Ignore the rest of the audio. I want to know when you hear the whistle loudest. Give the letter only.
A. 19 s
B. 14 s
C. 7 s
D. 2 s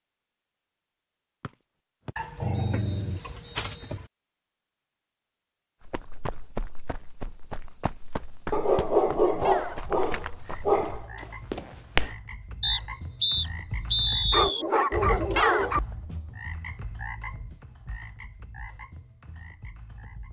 B.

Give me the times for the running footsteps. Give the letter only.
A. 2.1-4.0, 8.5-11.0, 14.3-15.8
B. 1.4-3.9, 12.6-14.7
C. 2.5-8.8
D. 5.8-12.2
D.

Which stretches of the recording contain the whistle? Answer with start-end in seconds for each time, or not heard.
1.4-3.9, 12.6-14.7.